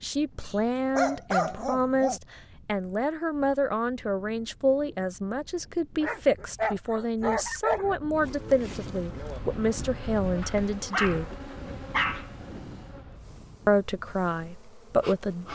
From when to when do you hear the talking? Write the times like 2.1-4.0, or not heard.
0.0-11.3, 13.7-15.5.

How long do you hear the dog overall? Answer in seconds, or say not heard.
6 s.